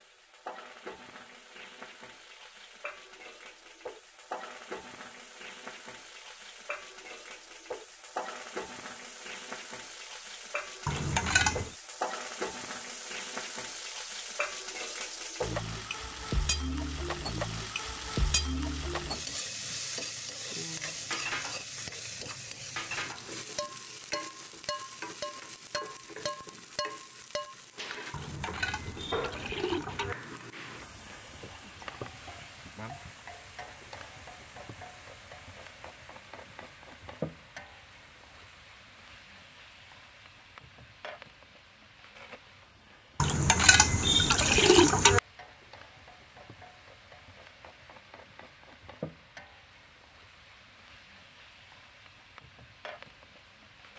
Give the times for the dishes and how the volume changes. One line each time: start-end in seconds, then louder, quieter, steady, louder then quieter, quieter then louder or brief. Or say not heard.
20.8-28.1 steady.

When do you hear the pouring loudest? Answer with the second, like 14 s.
45 s.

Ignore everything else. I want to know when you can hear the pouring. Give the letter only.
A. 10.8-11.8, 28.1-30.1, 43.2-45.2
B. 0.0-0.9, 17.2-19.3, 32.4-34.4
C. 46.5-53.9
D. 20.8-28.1
A.